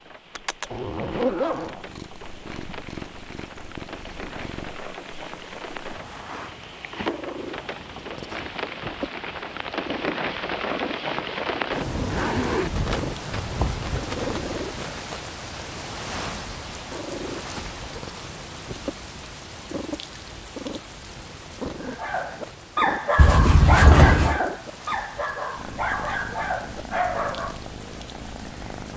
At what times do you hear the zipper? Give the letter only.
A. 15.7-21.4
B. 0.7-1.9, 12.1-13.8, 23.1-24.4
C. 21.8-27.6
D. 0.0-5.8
B.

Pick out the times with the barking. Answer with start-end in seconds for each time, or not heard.
21.8-27.6.